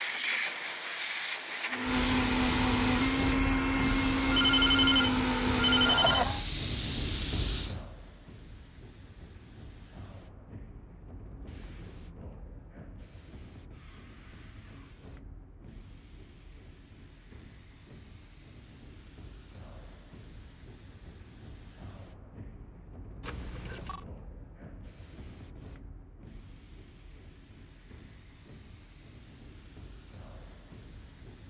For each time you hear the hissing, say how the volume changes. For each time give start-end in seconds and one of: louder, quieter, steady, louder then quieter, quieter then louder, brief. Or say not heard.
0.0-31.4 quieter.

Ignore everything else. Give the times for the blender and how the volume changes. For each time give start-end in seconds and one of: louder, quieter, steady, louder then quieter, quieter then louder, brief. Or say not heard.
1.7-6.5 steady.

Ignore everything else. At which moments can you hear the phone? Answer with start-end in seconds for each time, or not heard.
4.3-6.2, 23.2-24.1.